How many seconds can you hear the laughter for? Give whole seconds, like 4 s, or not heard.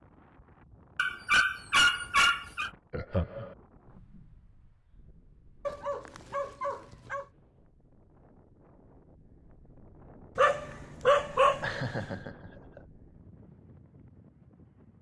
2 s.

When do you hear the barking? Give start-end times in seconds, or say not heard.
0.9-2.7, 5.7-7.3, 10.3-12.1.